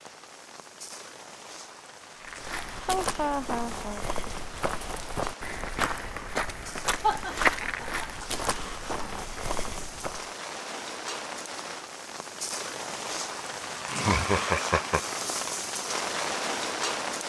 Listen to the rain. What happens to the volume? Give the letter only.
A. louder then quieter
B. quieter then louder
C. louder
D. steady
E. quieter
C.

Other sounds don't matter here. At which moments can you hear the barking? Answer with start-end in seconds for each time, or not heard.
not heard.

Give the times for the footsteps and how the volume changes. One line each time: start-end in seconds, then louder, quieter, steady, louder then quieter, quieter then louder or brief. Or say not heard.
2.2-10.3 louder then quieter.